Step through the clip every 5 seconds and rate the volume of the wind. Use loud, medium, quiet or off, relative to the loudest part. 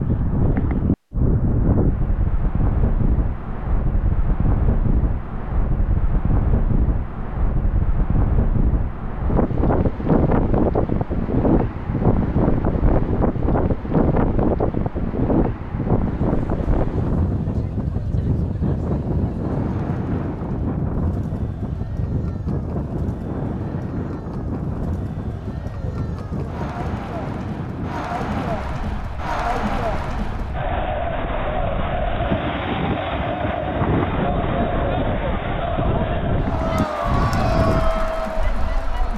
loud, medium, loud, loud, medium, medium, medium, medium.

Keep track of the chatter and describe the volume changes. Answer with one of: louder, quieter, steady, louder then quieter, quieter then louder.
louder.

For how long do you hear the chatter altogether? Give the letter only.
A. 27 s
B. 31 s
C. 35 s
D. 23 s
D.